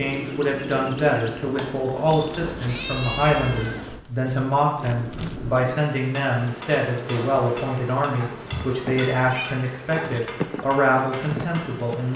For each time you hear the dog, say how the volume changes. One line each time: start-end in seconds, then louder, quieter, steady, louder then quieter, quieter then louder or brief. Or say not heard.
not heard.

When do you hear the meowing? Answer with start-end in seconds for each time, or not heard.
2.0-4.0, 8.2-9.6.